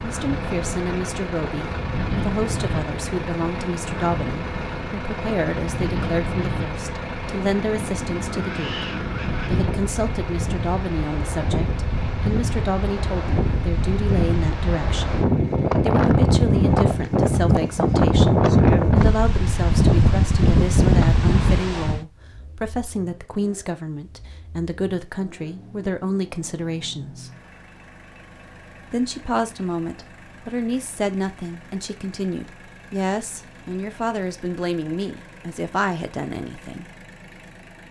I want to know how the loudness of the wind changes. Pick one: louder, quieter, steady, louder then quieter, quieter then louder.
louder.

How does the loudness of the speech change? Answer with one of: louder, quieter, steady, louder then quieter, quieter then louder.
steady.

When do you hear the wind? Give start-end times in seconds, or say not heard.
0.0-22.1.